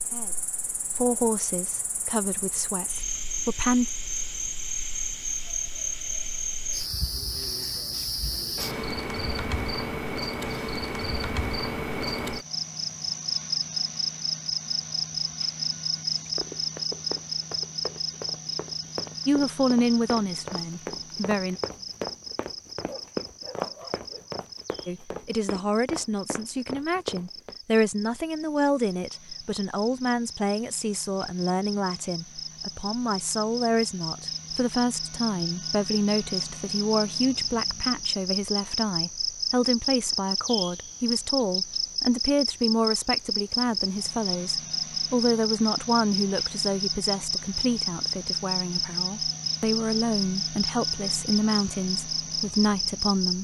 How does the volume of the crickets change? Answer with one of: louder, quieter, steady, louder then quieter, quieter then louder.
quieter then louder.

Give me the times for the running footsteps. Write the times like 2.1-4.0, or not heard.
16.4-27.6.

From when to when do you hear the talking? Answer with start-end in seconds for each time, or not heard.
0.0-3.9, 19.2-21.6, 24.9-53.3.